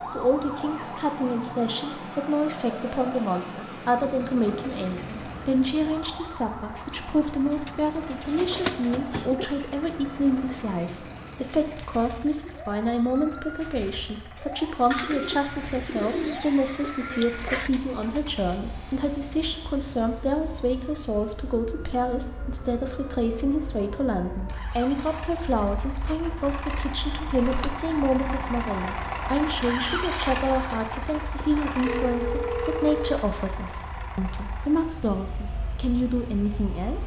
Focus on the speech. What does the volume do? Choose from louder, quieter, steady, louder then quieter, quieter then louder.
steady.